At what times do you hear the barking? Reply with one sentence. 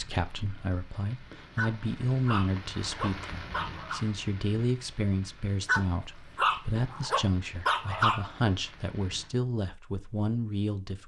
The barking can be heard from 1.6 to 4.0 s and from 5.7 to 8.3 s.